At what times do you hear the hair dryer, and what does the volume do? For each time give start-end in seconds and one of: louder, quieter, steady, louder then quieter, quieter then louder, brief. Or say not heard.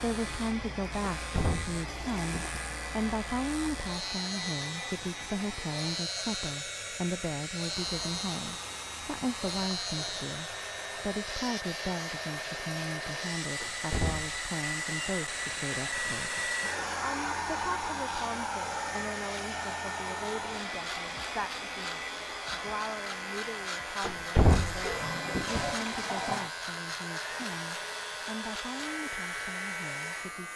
0.0-30.5 louder then quieter.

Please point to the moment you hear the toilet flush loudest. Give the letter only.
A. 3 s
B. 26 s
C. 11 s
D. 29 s
B.